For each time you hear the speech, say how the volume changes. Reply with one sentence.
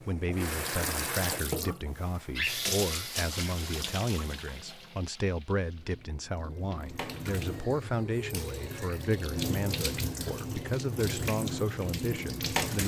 The speech can be heard from 0.1 to 12.8 s, at a steady volume.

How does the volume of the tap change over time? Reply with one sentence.
The loudness of the tap goes down, then up.